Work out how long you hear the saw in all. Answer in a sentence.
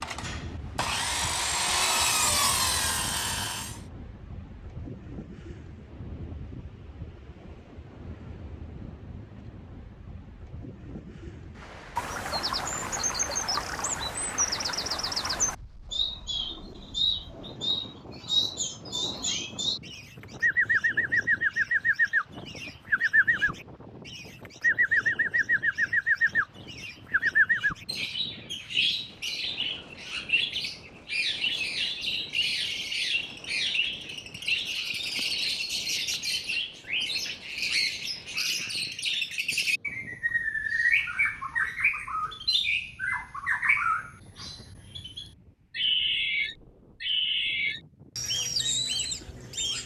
You can hear the saw for 4 seconds altogether.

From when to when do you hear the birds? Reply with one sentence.
You can hear the birds from 11.9 to 49.8 s.